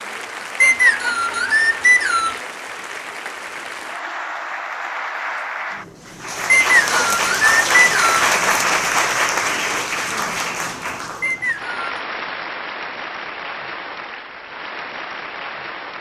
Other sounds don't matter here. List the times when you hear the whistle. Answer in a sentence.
The whistle can be heard from 0.6 to 2.4 s, from 6.5 to 8.2 s and from 11.2 to 11.9 s.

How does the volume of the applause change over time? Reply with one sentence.
The volume of the applause goes up, then down.